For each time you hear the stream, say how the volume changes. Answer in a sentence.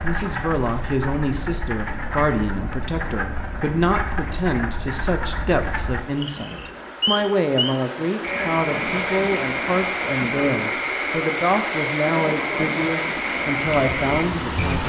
You can hear the stream from 0.0 to 14.8 s, getting louder.